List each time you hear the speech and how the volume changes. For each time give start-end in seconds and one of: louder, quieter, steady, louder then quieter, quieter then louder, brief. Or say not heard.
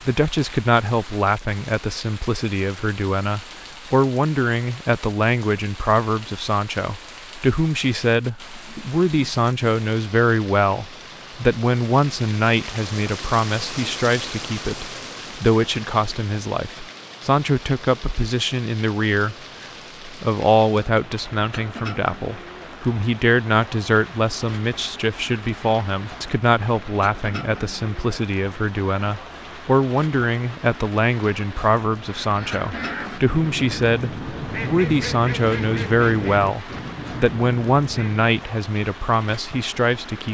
0.1-40.2 steady.